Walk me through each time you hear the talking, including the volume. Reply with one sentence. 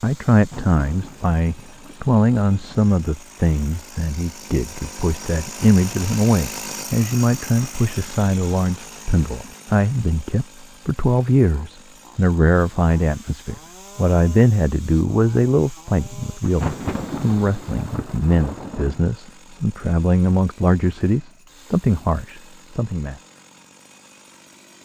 The talking can be heard from 0.0 to 23.1 s, at a steady volume.